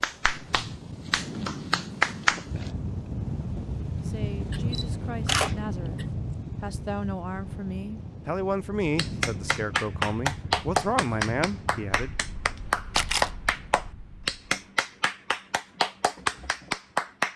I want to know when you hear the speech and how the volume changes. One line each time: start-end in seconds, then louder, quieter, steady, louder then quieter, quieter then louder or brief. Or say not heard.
4.0-12.2 louder.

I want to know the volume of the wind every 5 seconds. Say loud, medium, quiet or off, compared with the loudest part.
loud, loud, medium, off.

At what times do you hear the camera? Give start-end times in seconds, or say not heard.
4.4-6.0, 12.9-13.3.